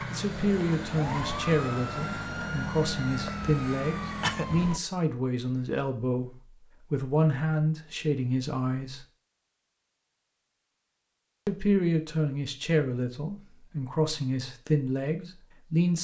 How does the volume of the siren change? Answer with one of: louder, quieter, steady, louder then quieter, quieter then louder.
steady.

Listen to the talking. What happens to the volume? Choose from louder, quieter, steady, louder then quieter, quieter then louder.
steady.